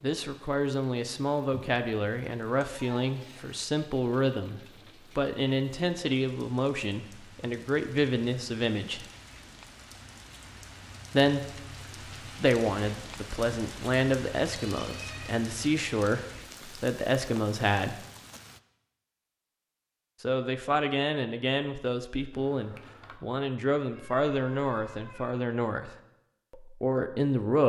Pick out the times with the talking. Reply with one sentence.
You can hear the talking from 0.0 to 9.1 s, from 11.1 to 11.6 s, from 12.3 to 18.1 s, from 20.2 to 25.9 s and from 26.5 to 27.6 s.